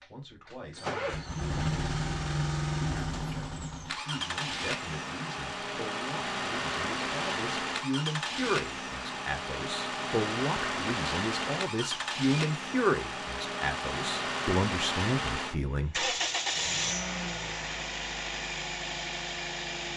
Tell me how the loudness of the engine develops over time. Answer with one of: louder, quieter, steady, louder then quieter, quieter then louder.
steady.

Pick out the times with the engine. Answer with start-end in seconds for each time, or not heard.
0.0-19.9.